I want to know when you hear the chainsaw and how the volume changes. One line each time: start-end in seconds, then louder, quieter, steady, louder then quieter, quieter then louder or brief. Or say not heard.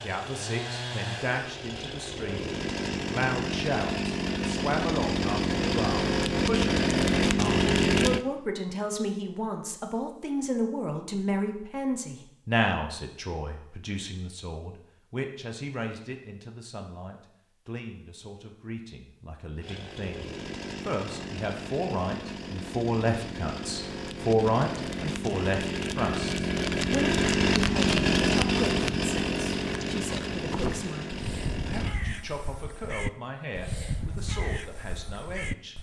0.0-8.2 louder
19.6-31.9 louder then quieter.